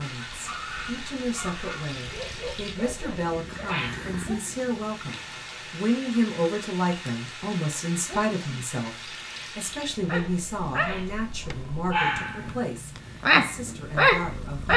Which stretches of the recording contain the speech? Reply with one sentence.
The speech can be heard from 0.0 to 14.7 s.